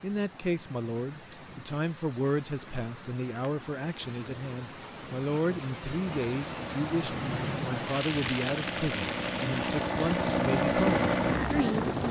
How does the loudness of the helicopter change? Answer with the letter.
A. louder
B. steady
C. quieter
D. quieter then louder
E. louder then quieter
A.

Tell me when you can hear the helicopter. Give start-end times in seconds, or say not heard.
6.0-12.0.